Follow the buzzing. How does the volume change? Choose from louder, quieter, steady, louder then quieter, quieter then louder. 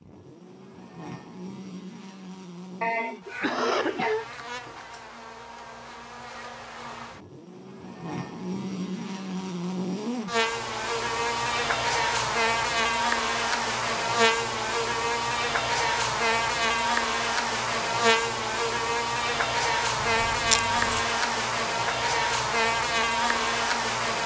louder.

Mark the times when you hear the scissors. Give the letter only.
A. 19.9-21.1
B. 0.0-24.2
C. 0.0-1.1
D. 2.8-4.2
A.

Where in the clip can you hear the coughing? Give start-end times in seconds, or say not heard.
2.8-4.2.